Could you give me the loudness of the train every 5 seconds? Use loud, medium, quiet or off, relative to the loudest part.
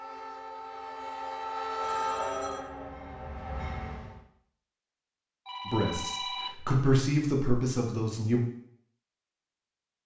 loud, off.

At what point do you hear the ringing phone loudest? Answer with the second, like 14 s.
6 s.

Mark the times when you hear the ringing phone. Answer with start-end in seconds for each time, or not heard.
1.8-2.7, 5.5-6.6.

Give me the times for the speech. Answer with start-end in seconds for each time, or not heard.
5.7-8.4.